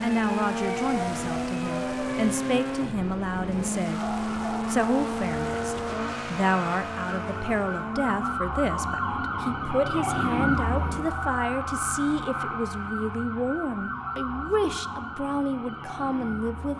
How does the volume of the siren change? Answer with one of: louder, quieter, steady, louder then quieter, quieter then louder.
louder then quieter.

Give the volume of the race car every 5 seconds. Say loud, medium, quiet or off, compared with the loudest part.
loud, loud, off, off.